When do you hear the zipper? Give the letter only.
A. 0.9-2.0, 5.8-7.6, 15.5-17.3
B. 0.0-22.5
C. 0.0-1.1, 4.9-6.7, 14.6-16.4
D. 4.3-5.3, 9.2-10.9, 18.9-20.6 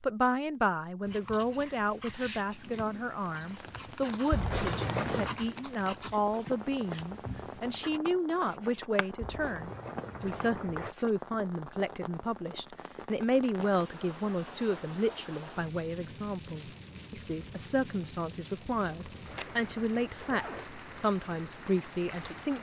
D.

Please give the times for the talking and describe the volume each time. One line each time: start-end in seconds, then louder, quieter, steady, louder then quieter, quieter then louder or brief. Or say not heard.
0.0-22.5 steady.